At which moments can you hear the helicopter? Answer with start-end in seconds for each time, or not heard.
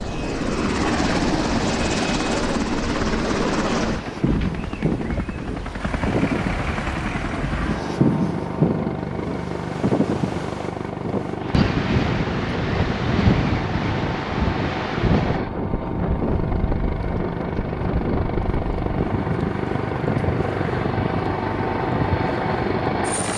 0.0-23.3.